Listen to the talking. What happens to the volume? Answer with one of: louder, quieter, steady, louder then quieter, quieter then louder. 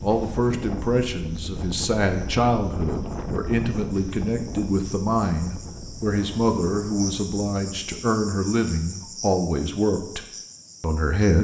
steady.